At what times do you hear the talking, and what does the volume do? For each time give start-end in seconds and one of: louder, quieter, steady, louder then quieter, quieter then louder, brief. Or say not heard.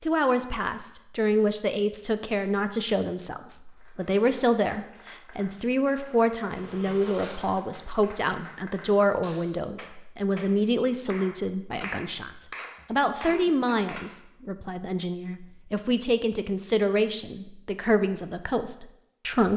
0.0-19.5 steady.